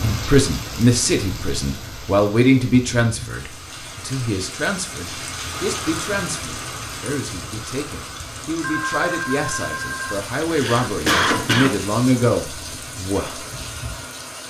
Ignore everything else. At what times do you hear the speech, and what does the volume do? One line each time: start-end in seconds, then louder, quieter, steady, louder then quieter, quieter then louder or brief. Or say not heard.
0.0-13.4 quieter then louder.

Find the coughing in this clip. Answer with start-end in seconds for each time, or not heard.
10.4-11.8.